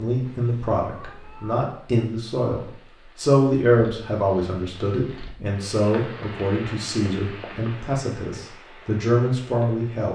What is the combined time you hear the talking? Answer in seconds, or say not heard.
10 s.